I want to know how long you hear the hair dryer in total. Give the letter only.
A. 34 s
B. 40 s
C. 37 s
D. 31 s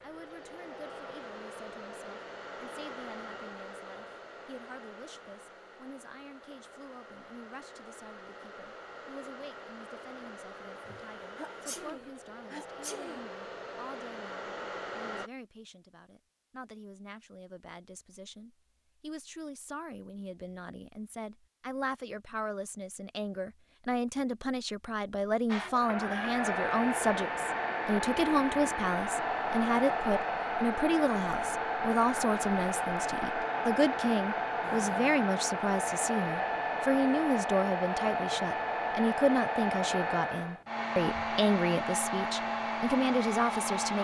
A.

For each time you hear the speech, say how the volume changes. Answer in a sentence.
You can hear the speech from 0.0 to 43.9 s, getting louder.